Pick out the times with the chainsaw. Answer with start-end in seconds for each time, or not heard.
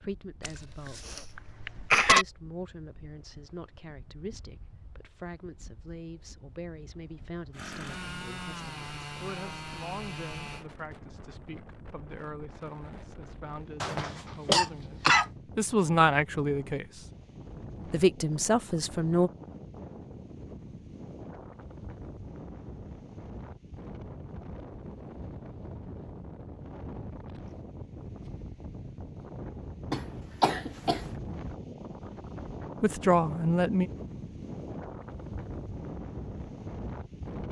7.5-10.7.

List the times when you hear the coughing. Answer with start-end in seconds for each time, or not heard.
0.4-2.2, 13.8-15.2, 29.9-31.1.